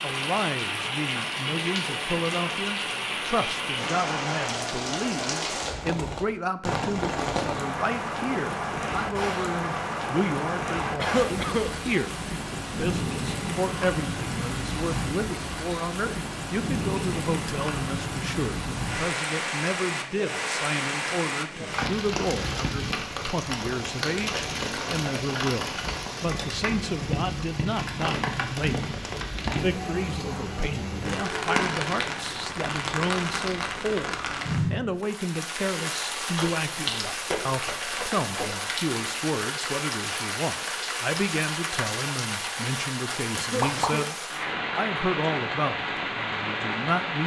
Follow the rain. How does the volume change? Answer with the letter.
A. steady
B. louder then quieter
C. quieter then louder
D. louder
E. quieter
A.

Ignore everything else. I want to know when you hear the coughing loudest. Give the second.
11 s.